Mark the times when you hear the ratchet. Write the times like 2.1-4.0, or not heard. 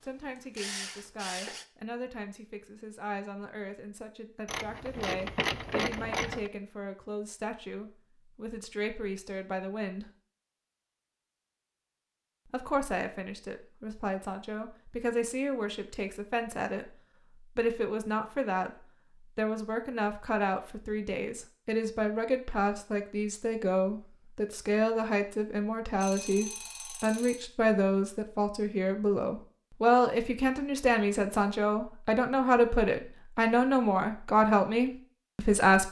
4.5-6.5.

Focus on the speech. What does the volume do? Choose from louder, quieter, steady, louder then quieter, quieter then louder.
louder.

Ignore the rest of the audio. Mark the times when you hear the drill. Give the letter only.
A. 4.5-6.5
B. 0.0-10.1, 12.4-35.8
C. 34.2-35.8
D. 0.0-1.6
D.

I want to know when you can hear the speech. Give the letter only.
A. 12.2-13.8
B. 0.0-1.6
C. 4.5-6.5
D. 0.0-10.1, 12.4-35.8
D.